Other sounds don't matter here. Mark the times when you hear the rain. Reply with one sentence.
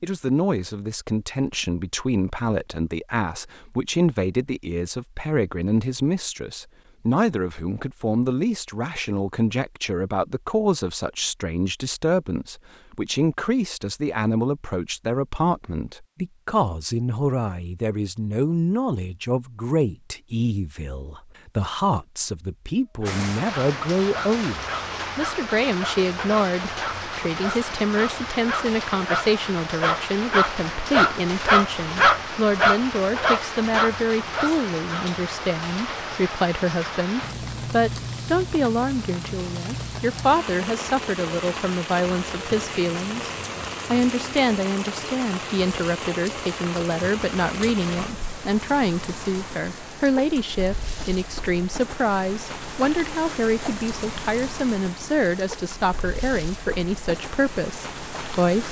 The rain can be heard from 23.1 to 58.6 s.